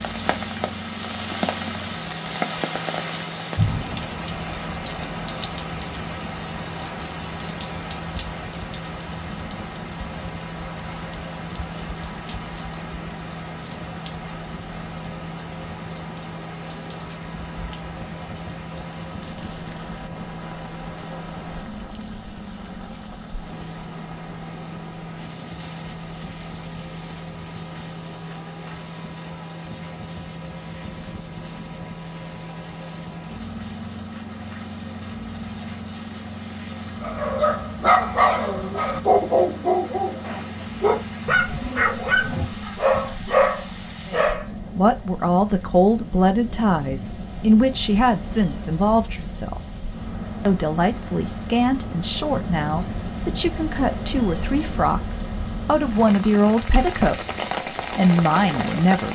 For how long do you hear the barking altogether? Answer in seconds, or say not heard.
7 s.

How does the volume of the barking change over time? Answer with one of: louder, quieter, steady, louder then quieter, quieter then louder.
steady.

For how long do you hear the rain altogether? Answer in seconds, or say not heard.
59 s.